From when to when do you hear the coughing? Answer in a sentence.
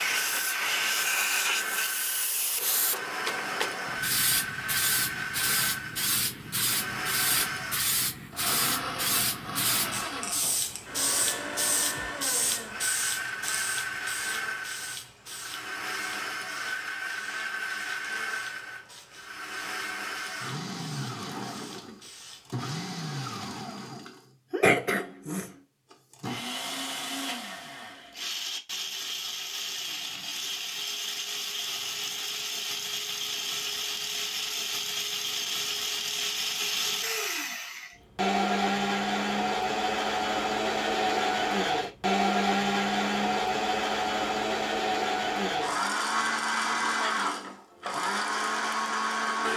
You can hear the coughing from 24.6 to 25.5 s.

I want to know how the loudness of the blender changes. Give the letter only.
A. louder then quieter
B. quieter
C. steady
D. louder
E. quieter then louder
D.